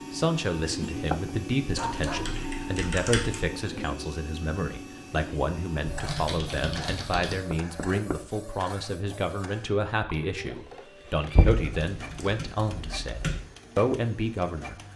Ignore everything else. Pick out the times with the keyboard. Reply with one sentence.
The keyboard can be heard from 1.8 to 3.4 s, from 5.8 to 7.4 s and from 11.4 to 13.4 s.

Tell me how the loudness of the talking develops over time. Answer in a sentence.
The loudness of the talking stays about the same.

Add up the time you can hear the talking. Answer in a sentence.
The talking can be heard for 15 seconds in total.